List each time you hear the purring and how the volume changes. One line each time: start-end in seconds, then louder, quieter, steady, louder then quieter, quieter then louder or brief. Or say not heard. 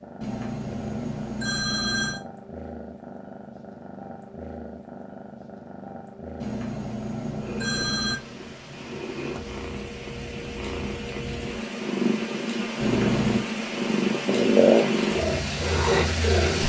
0.0-16.6 louder.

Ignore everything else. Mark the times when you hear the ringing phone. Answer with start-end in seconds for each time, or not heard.
0.2-2.2, 6.4-8.2, 12.8-13.4.